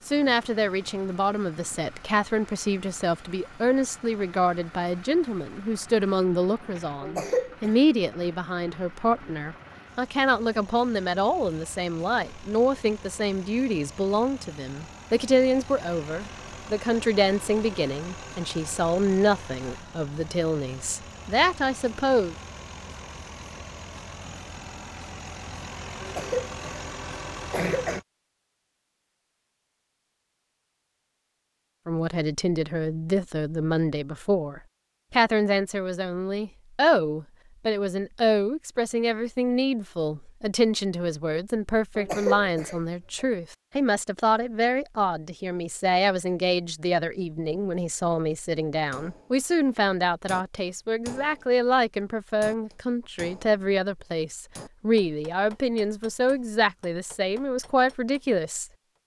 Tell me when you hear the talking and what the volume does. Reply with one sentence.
The talking can be heard from 0.1 to 22.4 s, at a steady volume; and from 31.9 to 58.6 s, at a steady volume.